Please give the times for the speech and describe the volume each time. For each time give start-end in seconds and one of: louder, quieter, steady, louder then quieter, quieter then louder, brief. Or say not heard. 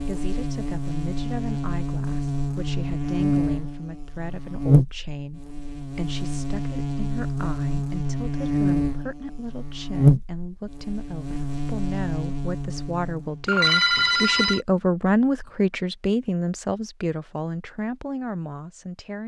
0.1-19.2 louder.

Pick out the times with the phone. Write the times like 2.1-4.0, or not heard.
13.4-14.6.